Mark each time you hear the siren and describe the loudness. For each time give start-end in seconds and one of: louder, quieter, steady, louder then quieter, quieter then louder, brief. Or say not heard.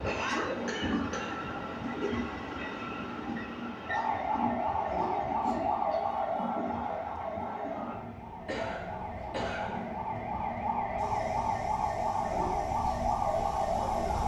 3.9-14.2 quieter then louder.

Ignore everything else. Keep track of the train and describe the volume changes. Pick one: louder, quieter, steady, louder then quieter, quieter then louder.
quieter.